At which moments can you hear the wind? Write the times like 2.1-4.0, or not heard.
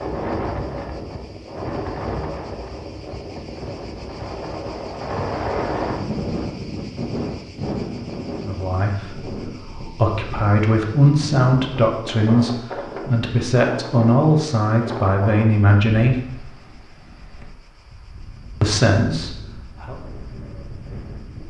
0.0-21.4.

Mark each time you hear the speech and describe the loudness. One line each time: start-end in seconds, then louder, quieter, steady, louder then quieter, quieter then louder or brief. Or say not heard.
8.4-16.1 louder
18.6-19.9 brief.